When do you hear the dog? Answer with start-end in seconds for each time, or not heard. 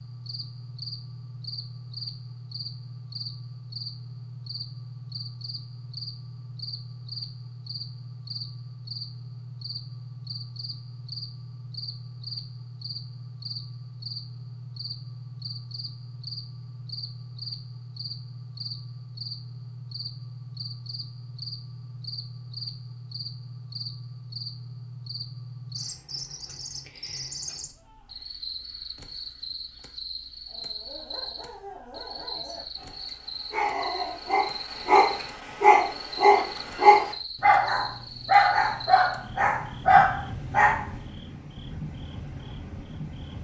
30.5-41.0.